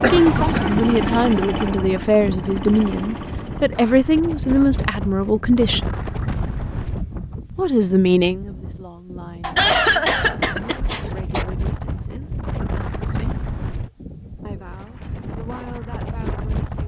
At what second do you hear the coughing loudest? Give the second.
10 s.